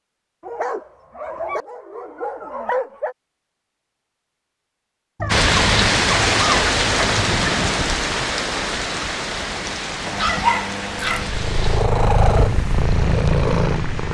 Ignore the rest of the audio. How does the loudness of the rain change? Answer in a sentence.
The loudness of the rain goes down.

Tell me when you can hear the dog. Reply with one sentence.
You can hear the dog from 0.4 to 3.1 s, from 5.2 to 7.2 s and from 10.1 to 11.3 s.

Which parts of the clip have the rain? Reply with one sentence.
The rain can be heard from 5.3 to 14.0 s.